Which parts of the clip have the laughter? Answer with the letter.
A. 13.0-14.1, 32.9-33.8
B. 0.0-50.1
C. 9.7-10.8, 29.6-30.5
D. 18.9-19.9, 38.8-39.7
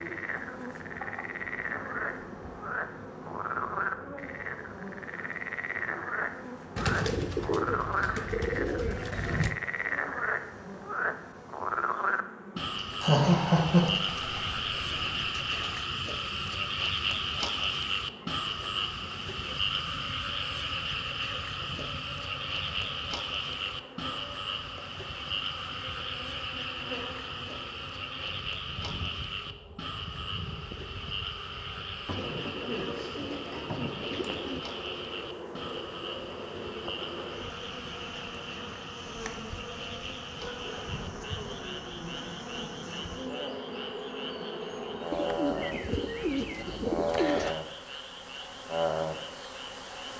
A.